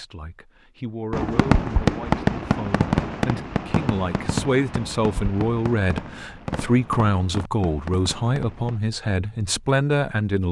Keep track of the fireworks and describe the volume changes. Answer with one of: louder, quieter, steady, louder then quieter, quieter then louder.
quieter.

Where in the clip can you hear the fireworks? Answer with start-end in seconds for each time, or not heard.
1.1-8.8.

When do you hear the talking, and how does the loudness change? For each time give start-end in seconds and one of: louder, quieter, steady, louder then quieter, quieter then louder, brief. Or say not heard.
0.0-10.4 louder.